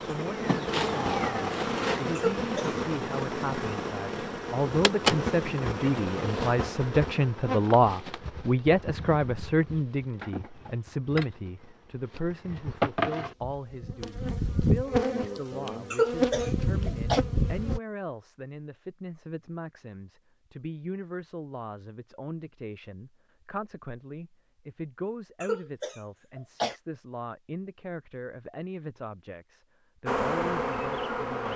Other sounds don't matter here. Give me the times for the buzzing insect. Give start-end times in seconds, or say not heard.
0.0-17.8, 30.1-31.5.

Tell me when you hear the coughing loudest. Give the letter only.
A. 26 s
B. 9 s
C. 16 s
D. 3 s
C.